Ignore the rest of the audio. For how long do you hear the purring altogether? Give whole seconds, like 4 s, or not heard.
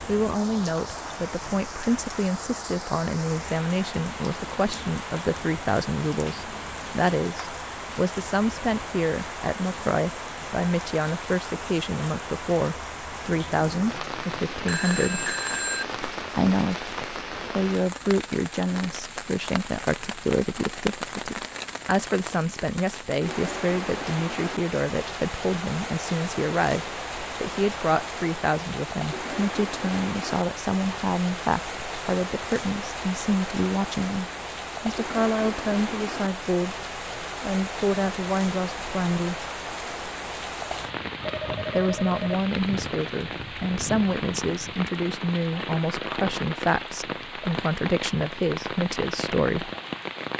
not heard.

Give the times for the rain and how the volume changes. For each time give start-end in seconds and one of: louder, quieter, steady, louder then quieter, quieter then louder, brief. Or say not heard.
0.0-50.3 steady.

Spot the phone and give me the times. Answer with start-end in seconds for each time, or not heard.
14.7-15.8, 41.2-42.5.